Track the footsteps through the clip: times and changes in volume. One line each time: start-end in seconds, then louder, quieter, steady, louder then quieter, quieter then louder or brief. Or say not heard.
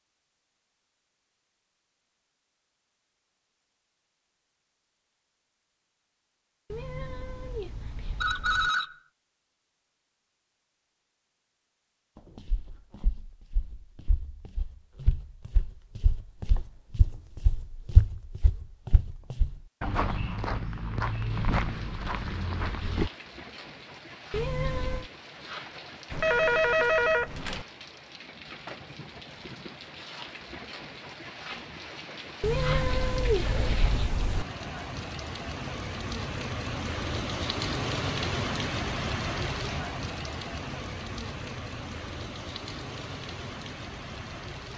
12.3-23.1 louder.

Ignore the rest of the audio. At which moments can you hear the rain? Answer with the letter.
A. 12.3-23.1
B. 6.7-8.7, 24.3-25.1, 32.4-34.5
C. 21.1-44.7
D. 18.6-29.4
C.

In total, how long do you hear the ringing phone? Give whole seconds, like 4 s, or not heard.
2 s.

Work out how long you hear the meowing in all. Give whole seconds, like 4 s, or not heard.
5 s.